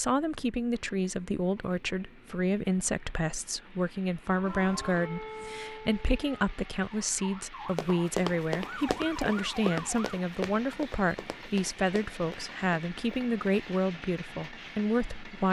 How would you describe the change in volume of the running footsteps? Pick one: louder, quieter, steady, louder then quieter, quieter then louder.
quieter.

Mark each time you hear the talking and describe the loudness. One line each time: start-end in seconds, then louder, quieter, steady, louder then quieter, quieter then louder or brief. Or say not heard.
0.0-15.4 steady.